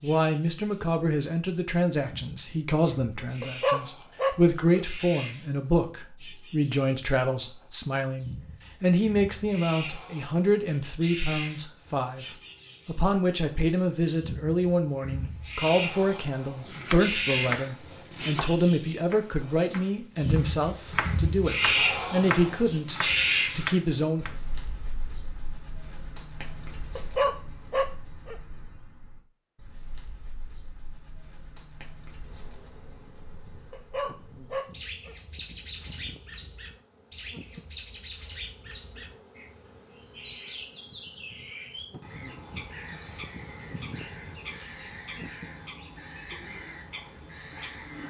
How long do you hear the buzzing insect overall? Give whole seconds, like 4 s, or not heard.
16 s.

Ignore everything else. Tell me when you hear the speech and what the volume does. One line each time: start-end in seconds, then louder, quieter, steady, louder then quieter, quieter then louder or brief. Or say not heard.
0.0-24.4 steady.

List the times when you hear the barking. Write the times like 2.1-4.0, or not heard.
3.4-4.8, 26.9-28.4, 33.7-35.1.